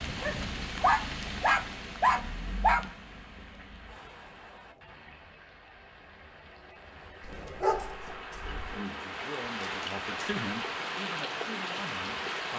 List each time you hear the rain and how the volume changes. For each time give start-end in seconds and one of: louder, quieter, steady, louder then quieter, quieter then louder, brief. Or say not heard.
0.0-12.5 quieter then louder.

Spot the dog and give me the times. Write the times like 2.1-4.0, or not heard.
0.2-2.9, 7.2-8.8.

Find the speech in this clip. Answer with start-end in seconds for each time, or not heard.
8.4-12.5.